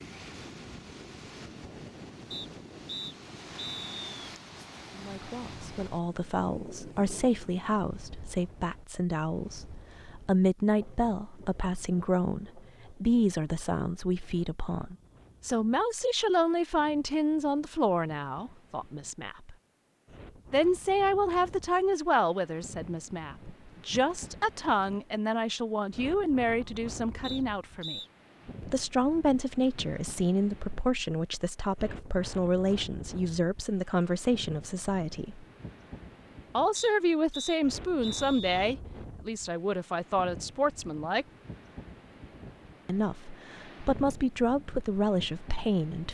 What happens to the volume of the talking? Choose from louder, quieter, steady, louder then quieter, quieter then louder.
steady.